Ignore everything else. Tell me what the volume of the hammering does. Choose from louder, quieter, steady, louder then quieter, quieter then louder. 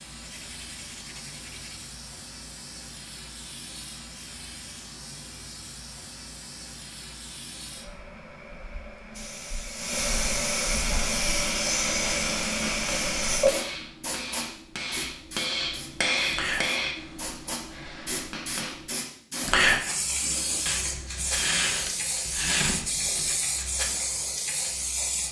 louder then quieter.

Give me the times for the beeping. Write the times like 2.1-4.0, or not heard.
not heard.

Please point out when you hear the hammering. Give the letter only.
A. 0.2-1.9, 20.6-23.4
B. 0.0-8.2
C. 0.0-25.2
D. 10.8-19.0
D.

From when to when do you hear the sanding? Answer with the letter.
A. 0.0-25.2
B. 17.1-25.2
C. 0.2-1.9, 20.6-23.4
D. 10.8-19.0
C.